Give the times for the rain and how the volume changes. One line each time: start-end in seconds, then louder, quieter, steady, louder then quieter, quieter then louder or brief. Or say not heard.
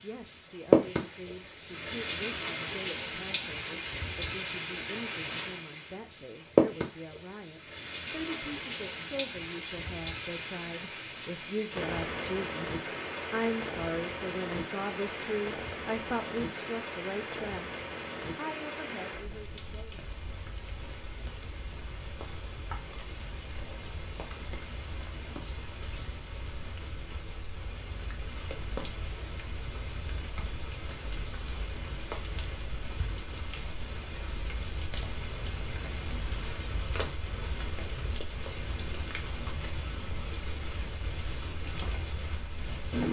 0.0-43.0 quieter.